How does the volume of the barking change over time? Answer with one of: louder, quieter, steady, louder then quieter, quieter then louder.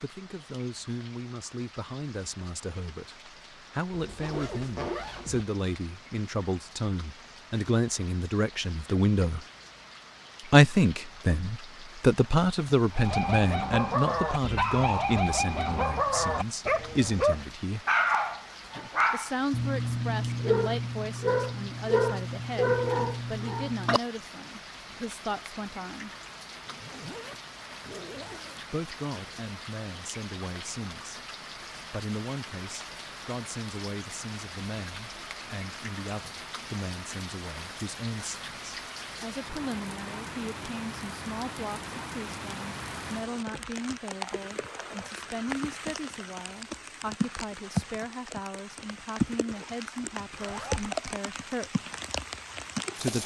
steady.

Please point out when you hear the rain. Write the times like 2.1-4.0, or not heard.
0.0-53.2.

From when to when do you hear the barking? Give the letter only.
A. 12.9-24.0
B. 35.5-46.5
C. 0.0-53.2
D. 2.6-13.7
A.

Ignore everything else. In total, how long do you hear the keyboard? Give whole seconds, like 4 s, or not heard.
not heard.